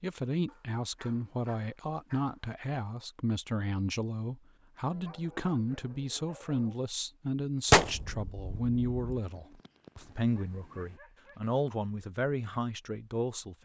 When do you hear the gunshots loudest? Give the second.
8 s.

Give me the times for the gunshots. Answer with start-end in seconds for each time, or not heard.
7.7-9.2.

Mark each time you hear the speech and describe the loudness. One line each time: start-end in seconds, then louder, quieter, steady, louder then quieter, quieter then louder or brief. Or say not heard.
0.0-13.6 steady.